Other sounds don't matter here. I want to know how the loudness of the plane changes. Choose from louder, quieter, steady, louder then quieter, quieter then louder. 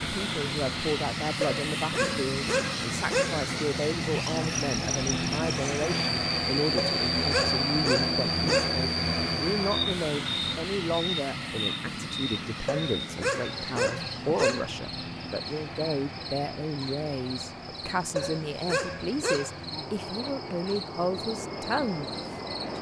quieter.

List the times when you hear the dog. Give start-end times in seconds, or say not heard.
1.4-3.4, 6.8-8.8, 12.7-14.7, 18.1-19.6.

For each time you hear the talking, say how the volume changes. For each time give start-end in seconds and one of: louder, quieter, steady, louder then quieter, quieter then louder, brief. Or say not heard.
0.0-22.7 steady.